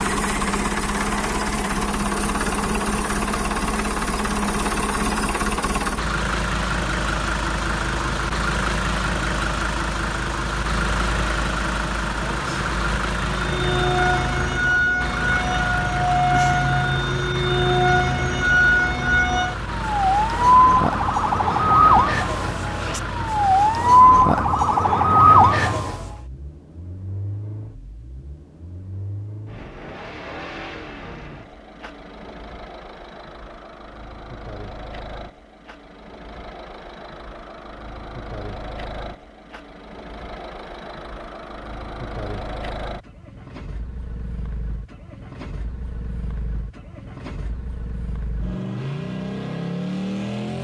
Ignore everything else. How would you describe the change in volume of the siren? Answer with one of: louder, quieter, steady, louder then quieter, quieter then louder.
louder.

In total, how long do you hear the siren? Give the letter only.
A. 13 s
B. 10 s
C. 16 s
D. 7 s
A.